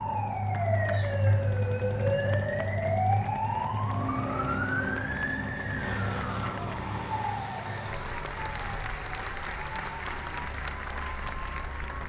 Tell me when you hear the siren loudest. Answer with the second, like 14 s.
3 s.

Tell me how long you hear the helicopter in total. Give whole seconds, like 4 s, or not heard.
12 s.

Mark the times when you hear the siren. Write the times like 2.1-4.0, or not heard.
0.0-12.0.